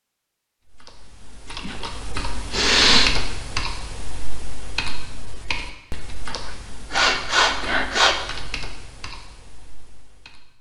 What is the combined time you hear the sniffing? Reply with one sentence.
The sniffing can be heard for 3 seconds in total.